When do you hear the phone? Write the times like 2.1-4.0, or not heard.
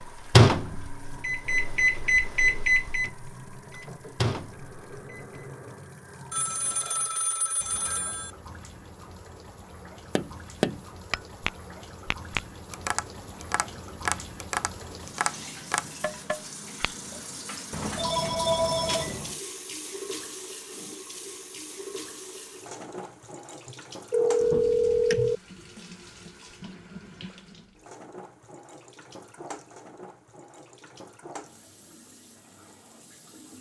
6.3-8.3, 17.7-19.4, 23.6-25.4.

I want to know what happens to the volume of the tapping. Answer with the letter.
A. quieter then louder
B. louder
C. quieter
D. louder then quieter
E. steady
C.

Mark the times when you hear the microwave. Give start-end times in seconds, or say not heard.
0.3-5.5.